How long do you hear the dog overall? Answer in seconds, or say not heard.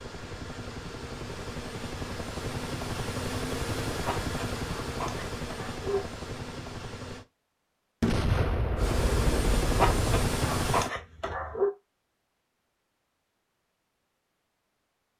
4 s.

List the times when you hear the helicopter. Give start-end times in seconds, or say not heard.
0.0-7.2, 8.8-10.9.